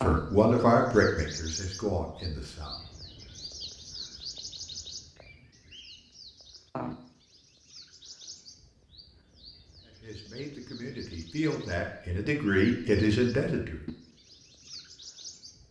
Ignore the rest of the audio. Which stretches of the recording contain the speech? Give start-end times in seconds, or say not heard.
0.0-2.8, 9.8-13.8.